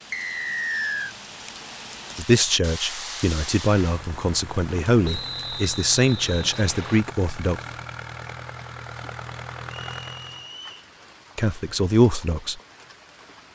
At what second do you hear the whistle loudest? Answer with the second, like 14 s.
1 s.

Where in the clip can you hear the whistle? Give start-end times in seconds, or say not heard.
0.1-1.1, 5.0-7.0, 9.9-10.8.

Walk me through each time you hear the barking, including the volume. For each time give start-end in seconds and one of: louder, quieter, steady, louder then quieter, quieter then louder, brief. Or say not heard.
not heard.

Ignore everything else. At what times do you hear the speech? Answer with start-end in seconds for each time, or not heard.
2.1-7.6, 11.3-12.6.